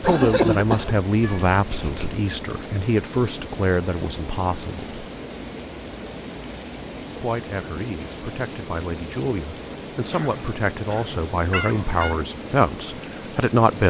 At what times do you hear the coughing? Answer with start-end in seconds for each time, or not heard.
0.0-1.0, 10.1-11.2.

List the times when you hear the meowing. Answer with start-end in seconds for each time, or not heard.
1.2-2.2, 11.5-12.2.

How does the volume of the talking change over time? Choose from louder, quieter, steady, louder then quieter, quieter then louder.
quieter then louder.